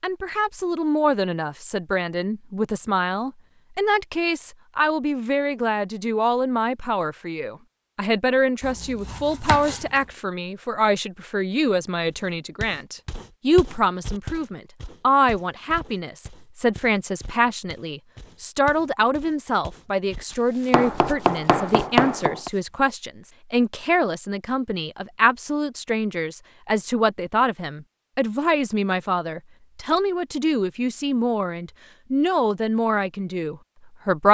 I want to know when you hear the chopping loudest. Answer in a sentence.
The loudest moment of the chopping is at 22 seconds.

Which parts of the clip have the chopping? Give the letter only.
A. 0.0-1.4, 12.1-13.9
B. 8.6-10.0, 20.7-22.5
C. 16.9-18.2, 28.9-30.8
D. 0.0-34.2
B.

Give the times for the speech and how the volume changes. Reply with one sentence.
The speech can be heard from 0.0 to 34.2 s, at a steady volume.